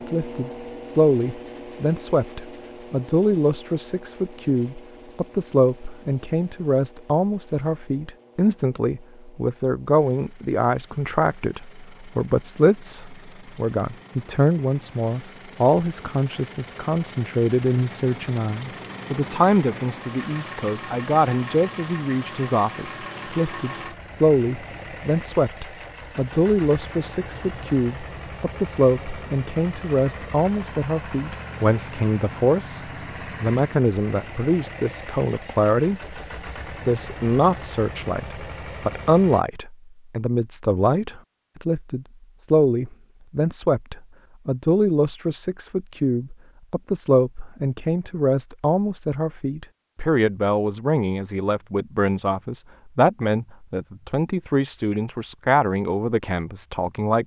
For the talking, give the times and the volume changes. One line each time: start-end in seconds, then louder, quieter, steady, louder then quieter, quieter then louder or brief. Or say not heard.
0.1-57.2 steady.